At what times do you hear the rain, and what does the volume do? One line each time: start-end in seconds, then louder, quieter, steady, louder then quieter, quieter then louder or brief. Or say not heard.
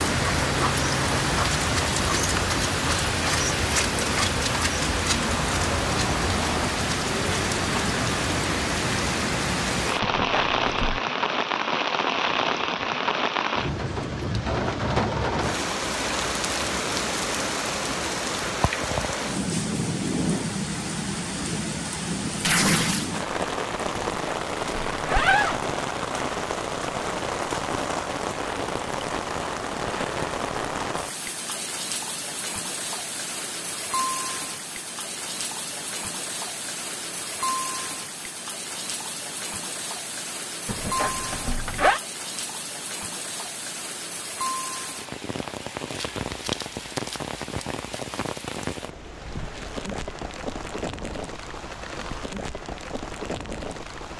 0.0-54.1 quieter.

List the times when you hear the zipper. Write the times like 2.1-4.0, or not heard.
10.0-11.0, 23.9-25.6, 40.6-42.0.